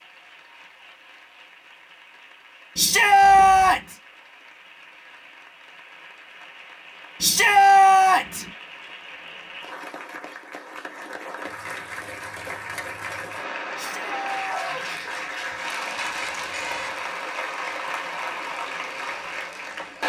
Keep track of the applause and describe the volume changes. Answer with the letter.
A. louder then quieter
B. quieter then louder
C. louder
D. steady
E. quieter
C.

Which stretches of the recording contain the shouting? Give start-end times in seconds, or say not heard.
2.8-3.8, 7.2-8.4, 13.8-14.8.